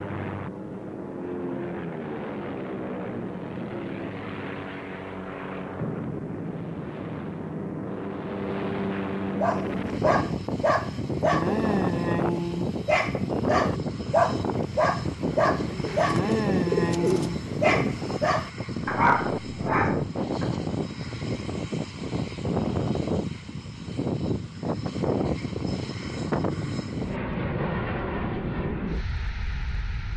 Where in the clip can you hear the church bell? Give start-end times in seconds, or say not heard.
not heard.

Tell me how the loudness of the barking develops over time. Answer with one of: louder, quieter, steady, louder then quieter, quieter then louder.
steady.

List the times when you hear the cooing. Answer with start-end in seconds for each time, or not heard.
15.7-17.3.